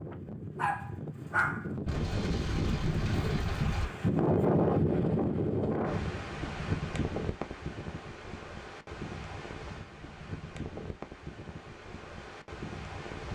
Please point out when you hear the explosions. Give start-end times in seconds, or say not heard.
1.9-3.9.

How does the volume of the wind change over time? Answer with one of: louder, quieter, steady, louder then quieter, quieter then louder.
louder then quieter.